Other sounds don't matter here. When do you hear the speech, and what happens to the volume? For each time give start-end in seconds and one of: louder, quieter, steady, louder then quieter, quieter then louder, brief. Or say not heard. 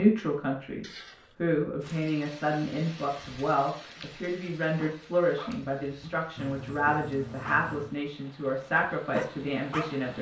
0.0-10.1 steady.